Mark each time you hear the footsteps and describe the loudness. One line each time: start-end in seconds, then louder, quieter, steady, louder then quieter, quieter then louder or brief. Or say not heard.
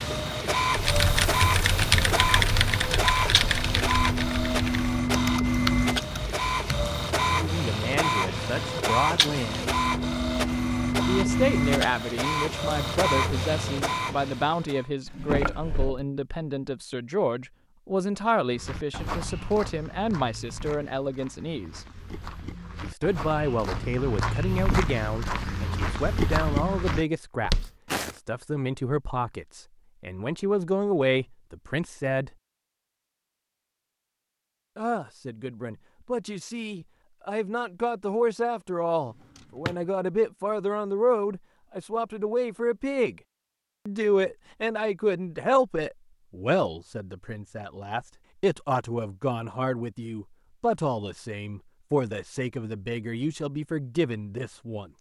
18.6-28.1 quieter then louder.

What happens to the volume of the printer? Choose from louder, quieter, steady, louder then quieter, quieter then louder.
steady.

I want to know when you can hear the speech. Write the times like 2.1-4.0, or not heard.
7.3-9.7, 11.1-21.9, 22.8-32.3, 34.8-43.2, 43.9-54.9.